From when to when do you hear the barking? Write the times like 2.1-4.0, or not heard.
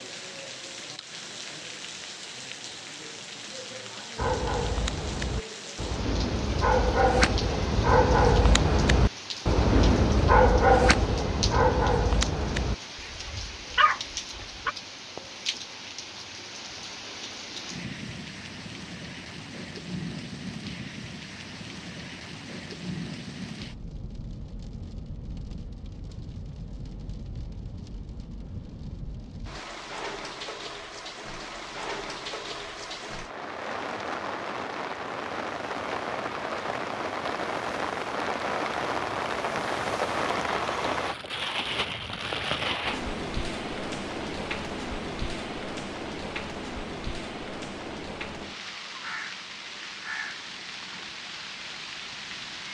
4.2-14.8.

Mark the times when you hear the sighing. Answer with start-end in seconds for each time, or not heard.
not heard.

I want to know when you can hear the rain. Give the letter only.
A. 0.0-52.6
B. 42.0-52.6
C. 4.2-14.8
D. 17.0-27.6
A.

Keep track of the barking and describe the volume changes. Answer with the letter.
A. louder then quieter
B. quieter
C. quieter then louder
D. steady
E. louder
A.